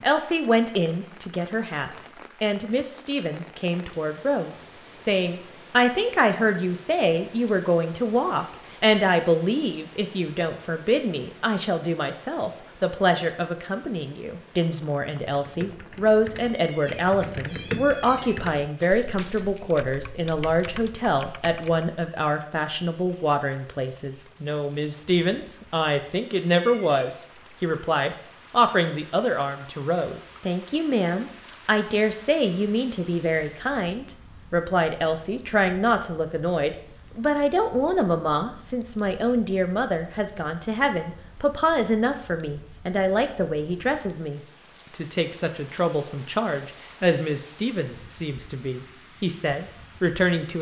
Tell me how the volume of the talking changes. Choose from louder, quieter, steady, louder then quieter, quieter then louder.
steady.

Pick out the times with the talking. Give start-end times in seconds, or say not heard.
0.0-50.5.